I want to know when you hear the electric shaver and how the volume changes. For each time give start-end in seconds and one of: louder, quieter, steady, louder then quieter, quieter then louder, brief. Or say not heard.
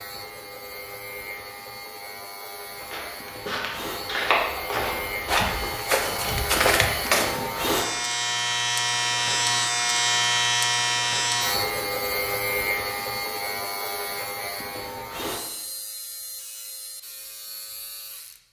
0.0-18.4 louder then quieter.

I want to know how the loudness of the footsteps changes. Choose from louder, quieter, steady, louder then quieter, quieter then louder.
louder.